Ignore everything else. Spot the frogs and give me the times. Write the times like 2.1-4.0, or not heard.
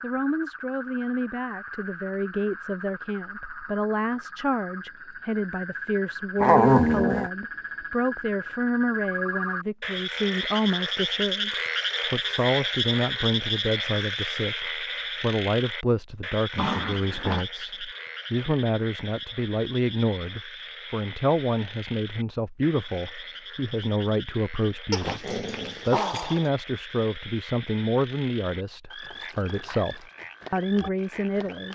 0.0-31.7.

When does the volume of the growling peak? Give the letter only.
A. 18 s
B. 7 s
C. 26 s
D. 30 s
B.